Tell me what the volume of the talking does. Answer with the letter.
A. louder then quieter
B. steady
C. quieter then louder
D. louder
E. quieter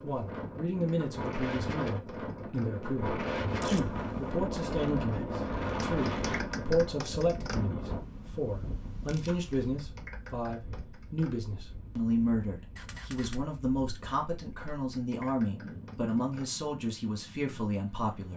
B.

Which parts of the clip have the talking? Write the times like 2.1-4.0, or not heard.
0.0-18.3.